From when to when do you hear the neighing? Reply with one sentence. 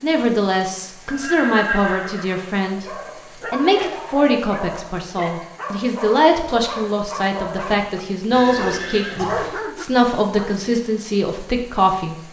You can hear the neighing from 1.1 to 2.5 s and from 8.3 to 9.6 s.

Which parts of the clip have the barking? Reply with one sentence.
The barking can be heard from 2.6 to 10.6 s.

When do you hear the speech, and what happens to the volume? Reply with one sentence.
The speech can be heard from 0.0 to 12.2 s, at a steady volume.